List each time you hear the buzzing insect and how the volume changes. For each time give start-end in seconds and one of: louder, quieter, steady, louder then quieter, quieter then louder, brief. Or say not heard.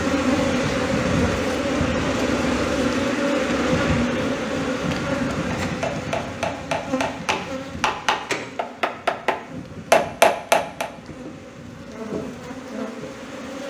0.0-13.6 quieter.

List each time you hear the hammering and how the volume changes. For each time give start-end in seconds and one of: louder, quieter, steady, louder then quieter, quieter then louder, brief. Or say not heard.
5.3-10.9 louder.